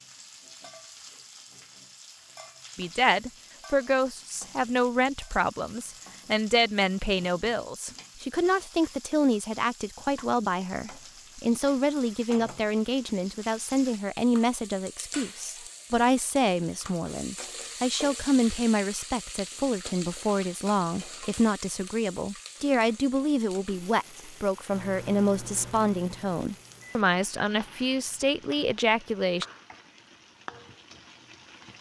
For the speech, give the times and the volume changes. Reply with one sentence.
You can hear the speech from 2.8 to 29.4 s, at a steady volume.